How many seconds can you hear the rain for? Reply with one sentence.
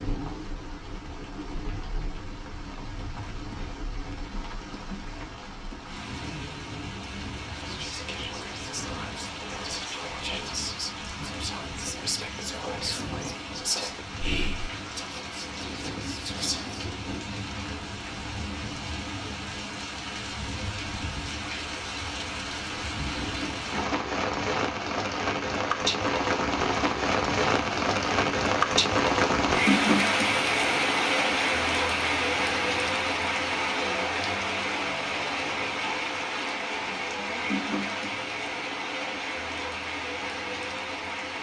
The rain can be heard for 41 seconds in total.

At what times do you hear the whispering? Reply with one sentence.
The whispering can be heard from 7.5 to 16.9 s.